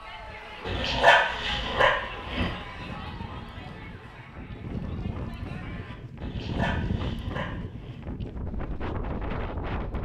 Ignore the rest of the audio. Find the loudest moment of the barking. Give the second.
1 s.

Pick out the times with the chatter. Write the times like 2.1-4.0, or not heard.
0.0-6.0.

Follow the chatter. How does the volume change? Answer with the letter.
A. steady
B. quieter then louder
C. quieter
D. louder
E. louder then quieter
C.